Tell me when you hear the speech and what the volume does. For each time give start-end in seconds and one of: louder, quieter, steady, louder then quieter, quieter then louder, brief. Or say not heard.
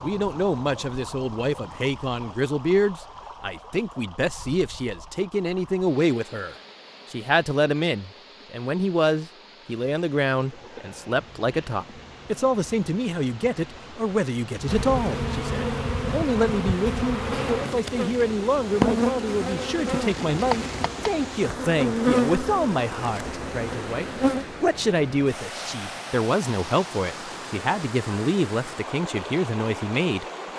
0.0-30.2 steady.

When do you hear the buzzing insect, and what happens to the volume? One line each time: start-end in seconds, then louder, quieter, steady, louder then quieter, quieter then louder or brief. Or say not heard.
10.4-24.4 louder.